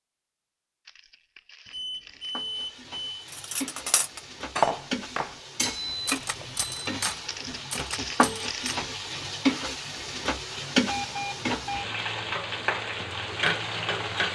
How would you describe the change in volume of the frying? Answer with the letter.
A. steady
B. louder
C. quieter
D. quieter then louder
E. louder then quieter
B.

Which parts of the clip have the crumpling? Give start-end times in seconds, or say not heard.
0.8-2.5, 7.2-8.8.